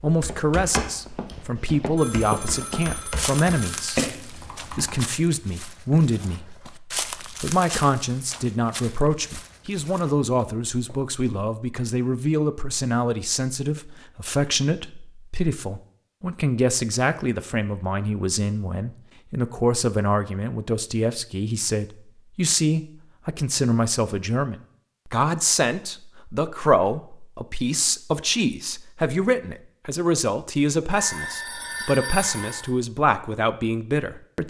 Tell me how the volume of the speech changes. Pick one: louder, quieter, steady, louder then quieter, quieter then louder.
steady.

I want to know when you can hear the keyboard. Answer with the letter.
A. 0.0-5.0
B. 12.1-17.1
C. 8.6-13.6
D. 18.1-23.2
A.